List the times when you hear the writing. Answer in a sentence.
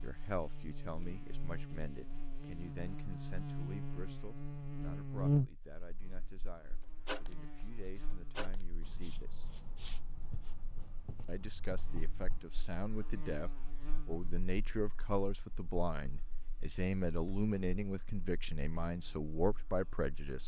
You can hear the writing from 7.0 to 12.5 s.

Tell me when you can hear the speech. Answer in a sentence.
You can hear the speech from 0.0 to 9.5 s and from 11.2 to 20.4 s.